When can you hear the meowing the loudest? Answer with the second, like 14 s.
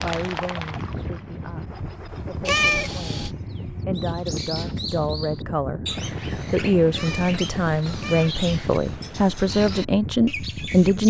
3 s.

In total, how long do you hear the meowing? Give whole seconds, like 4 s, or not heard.
3 s.